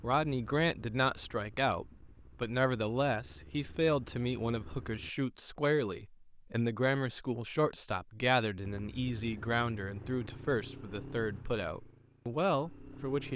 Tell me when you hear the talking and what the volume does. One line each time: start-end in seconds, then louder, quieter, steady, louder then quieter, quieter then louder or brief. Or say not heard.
0.0-13.3 steady.